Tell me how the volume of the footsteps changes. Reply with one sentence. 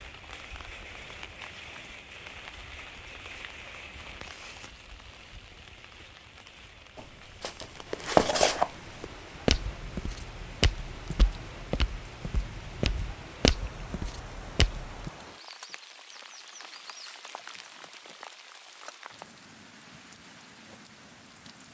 The loudness of the footsteps goes down, then up.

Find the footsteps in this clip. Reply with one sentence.
You can hear the footsteps from 7.0 to 15.1 s.